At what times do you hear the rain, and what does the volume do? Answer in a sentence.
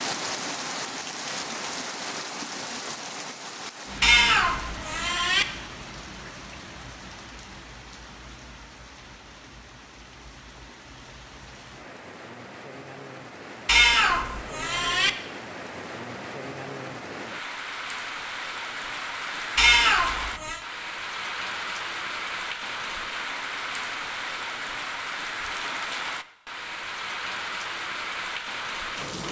You can hear the rain from 0.0 to 29.2 s, getting quieter then louder.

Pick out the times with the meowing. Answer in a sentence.
You can hear the meowing from 4.0 to 5.5 s, from 13.7 to 15.1 s and from 19.6 to 20.6 s.